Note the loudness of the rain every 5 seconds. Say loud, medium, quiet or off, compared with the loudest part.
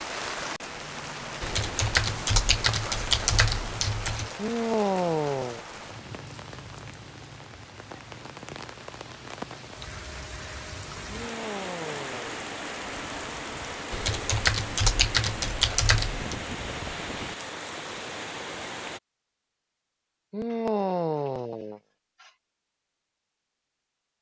loud, medium, loud, loud, off.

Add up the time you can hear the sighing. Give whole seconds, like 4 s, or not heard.
5 s.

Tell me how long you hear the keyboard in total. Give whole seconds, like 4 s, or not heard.
5 s.